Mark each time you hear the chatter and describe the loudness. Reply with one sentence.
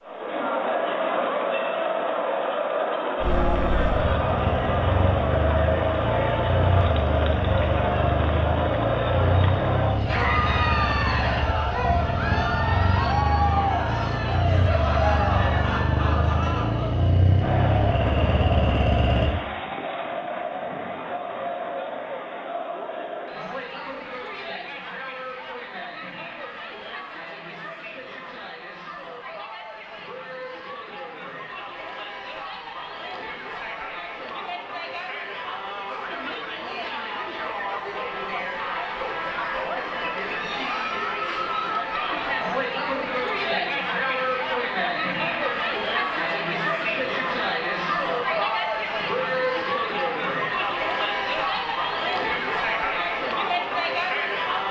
You can hear the chatter from 0.0 to 54.6 s, getting quieter then louder.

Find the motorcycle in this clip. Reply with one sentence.
The motorcycle can be heard from 3.2 to 19.4 s.